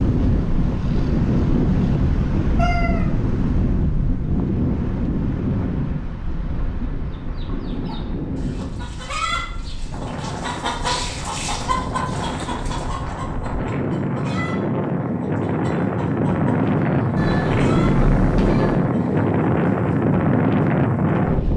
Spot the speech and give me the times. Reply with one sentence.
The speech can't be heard in this clip.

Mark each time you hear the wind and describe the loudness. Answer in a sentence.
The wind can be heard from 0.0 to 21.5 s, getting quieter then louder.